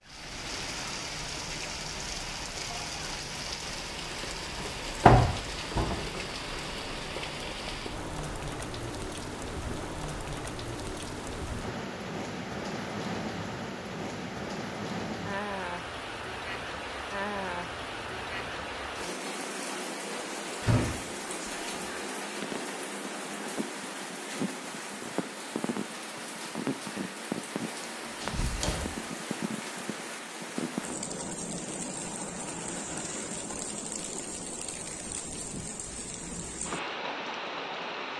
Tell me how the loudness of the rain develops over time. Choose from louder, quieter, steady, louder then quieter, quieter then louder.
steady.